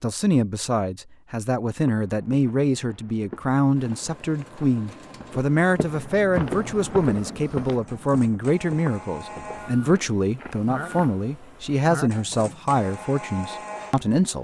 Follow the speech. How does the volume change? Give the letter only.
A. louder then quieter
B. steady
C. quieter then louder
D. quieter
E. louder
B.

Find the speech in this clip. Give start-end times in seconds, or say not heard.
0.0-14.4.